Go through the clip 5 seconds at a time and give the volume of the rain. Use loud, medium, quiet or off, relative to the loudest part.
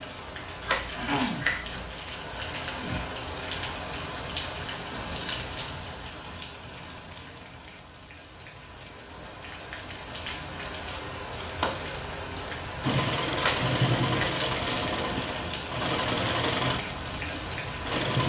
loud, medium, loud, loud.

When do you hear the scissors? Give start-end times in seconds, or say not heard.
0.6-1.9, 13.3-14.2.